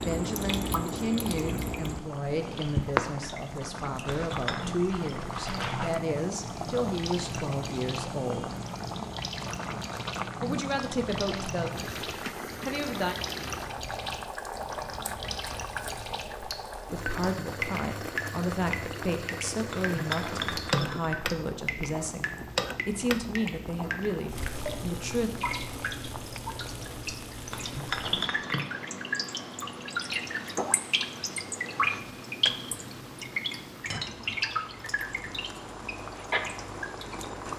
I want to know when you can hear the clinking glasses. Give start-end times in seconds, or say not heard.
4.0-4.8, 19.7-21.1, 27.5-28.6.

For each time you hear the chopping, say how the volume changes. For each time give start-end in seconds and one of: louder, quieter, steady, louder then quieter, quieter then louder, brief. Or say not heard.
not heard.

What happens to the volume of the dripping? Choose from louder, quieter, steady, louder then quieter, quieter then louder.
quieter then louder.